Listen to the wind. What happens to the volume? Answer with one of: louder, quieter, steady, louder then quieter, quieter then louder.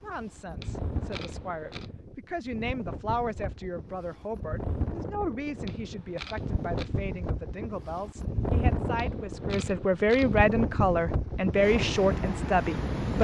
louder.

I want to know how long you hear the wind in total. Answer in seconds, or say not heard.
13 s.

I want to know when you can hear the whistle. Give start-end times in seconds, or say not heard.
not heard.